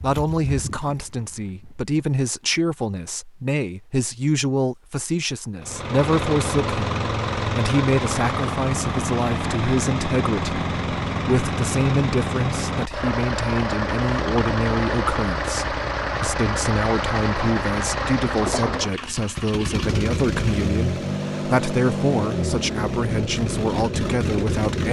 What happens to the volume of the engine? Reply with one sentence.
The volume of the engine stays about the same.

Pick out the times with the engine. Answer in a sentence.
The engine can be heard from 5.6 to 24.8 s.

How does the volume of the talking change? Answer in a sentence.
The volume of the talking stays about the same.